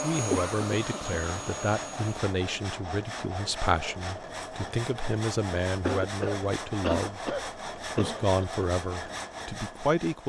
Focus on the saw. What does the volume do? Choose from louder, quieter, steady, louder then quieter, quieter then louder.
steady.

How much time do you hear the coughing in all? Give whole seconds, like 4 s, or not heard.
4 s.